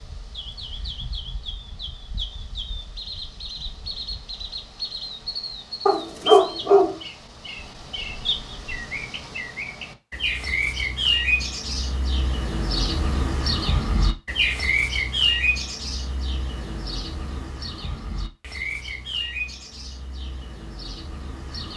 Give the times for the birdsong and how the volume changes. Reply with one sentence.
The birdsong can be heard from 0.0 to 21.7 s, getting louder then quieter.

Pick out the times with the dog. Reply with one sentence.
You can hear the dog from 5.8 to 7.0 s.